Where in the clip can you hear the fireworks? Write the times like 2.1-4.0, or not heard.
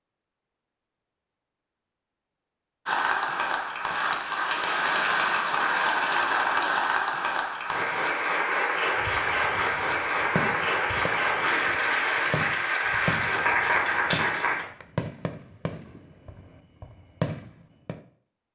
8.9-18.0.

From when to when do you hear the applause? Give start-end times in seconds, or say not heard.
2.9-14.7.